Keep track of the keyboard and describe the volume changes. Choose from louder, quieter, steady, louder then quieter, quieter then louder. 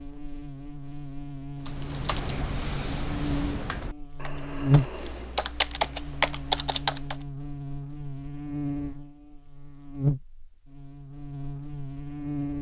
quieter then louder.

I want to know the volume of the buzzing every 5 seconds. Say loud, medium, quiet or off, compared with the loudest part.
loud, medium, loud.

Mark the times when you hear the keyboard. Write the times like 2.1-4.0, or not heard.
1.6-7.2.